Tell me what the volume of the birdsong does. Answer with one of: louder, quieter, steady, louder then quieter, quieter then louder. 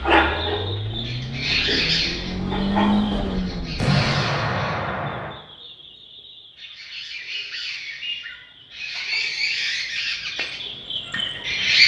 quieter then louder.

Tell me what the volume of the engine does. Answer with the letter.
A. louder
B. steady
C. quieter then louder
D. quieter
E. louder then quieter
A.